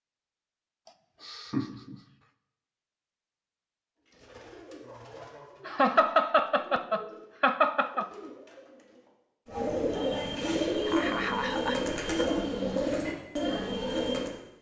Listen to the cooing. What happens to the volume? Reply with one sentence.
The loudness of the cooing goes up.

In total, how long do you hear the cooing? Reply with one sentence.
You can hear the cooing for 10 seconds altogether.